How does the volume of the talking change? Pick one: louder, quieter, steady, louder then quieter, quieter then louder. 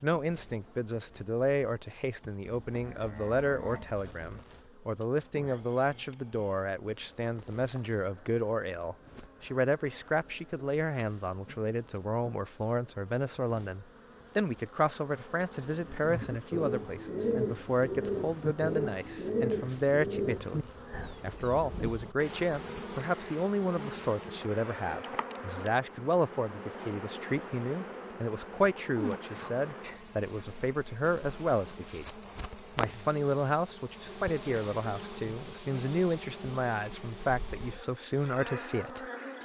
steady.